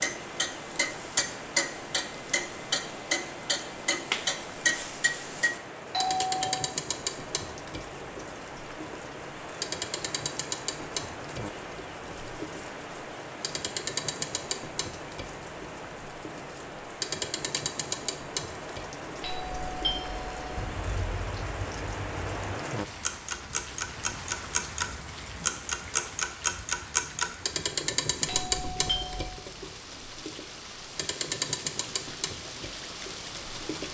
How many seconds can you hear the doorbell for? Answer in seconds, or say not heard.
3 s.